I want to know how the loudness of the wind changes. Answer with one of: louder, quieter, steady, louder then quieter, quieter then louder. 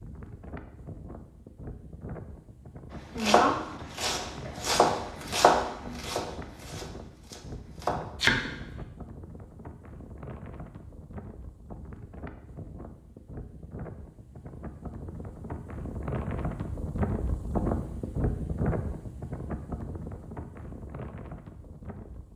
louder.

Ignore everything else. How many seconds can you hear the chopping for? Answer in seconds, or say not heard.
6 s.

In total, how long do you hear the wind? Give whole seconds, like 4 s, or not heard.
22 s.